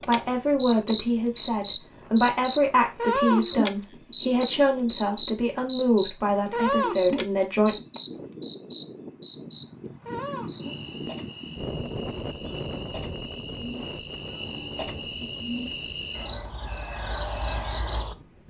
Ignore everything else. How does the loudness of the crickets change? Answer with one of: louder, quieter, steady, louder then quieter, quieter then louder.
quieter then louder.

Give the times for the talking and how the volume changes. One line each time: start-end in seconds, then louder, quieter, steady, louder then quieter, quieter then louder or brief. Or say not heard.
0.1-7.8 steady.